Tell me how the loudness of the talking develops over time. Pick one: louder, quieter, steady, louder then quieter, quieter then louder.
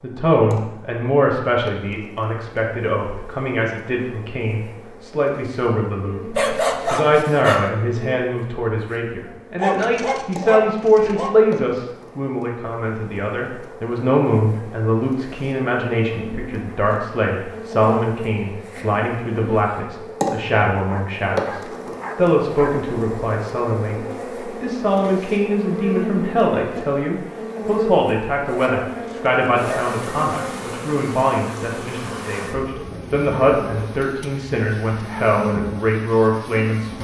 steady.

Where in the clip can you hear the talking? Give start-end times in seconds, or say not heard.
0.0-37.0.